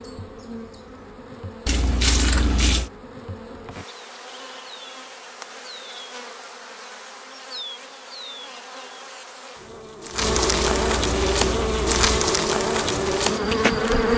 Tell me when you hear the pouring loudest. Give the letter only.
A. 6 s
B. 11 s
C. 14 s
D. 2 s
D.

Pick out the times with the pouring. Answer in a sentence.
The pouring can be heard from 1.6 to 2.9 s and from 10.4 to 12.2 s.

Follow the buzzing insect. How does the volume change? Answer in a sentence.
The volume of the buzzing insect goes up.